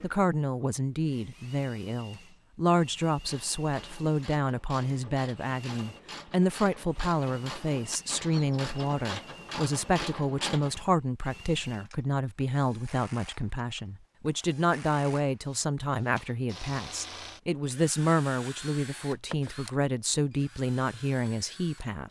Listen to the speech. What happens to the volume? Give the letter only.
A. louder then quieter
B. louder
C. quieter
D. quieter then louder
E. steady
E.